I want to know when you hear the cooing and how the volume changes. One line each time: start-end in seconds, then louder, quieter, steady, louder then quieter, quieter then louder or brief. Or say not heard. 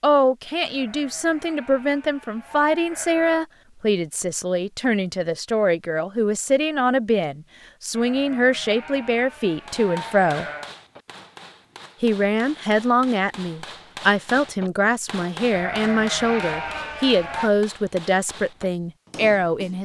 not heard.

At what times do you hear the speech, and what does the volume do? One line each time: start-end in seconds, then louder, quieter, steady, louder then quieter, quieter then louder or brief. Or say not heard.
0.0-10.4 steady
12.0-19.8 steady.